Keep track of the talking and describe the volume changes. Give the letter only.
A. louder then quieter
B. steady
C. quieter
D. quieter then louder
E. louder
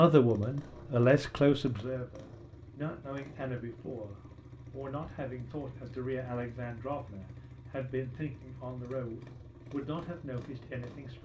C.